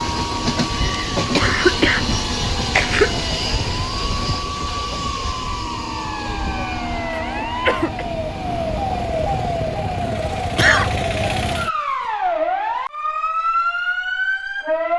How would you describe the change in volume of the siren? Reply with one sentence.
The volume of the siren goes up.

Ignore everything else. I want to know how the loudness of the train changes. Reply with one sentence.
The loudness of the train goes down.